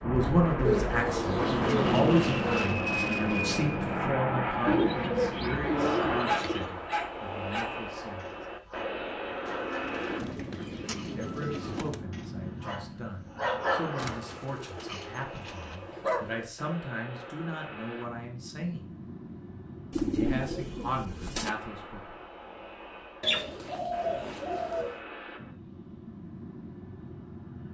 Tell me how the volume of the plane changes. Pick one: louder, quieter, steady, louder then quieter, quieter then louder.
quieter.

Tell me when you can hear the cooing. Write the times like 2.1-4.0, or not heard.
0.6-2.6, 4.7-6.8, 9.4-12.0, 13.9-16.5, 19.9-21.5, 23.2-25.0.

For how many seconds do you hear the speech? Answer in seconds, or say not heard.
18 s.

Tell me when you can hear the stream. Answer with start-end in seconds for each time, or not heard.
not heard.